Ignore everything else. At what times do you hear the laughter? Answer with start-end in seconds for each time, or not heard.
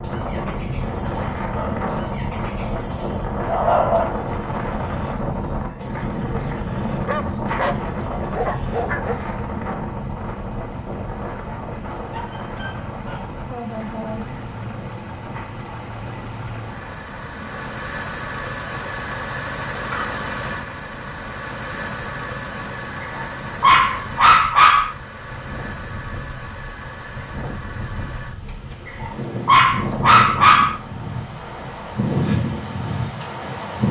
13.4-14.3.